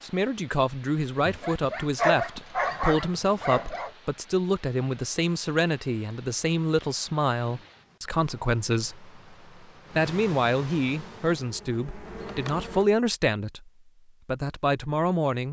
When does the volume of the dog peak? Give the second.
2 s.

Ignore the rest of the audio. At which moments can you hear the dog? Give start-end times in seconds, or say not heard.
1.2-3.9.